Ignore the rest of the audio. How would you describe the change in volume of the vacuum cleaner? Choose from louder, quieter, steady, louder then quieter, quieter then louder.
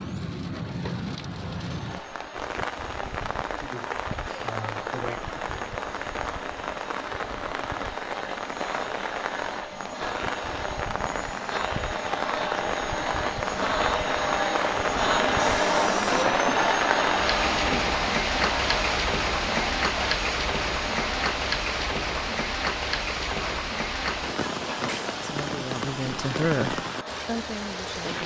louder then quieter.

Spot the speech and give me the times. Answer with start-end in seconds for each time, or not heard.
25.1-28.2.